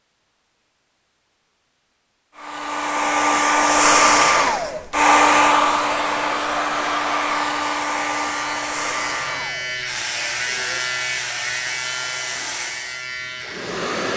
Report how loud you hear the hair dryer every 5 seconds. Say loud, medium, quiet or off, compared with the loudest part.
loud, loud, quiet.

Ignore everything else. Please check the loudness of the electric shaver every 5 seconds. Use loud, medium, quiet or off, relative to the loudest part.
off, loud, loud.